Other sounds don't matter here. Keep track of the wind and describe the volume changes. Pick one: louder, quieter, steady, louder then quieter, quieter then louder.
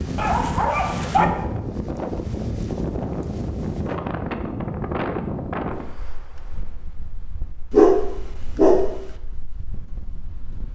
quieter.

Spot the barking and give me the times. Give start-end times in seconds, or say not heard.
0.1-1.2, 7.7-9.2.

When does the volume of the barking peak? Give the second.
8 s.